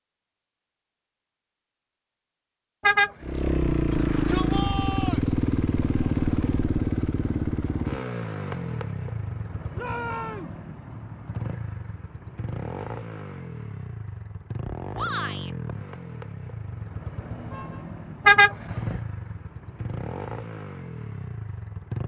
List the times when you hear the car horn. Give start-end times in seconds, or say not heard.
2.8-3.5, 18.2-19.0.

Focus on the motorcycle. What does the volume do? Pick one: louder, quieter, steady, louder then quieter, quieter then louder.
quieter.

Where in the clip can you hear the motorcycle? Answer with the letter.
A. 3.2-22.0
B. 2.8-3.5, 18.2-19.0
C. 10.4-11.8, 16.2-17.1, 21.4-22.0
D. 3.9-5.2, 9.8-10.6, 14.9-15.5
A.